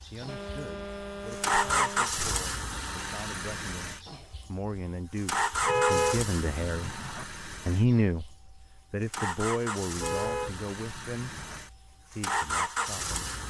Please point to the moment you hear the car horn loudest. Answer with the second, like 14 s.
6 s.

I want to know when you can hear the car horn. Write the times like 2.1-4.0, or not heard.
0.2-2.2, 5.6-7.2, 9.9-11.6.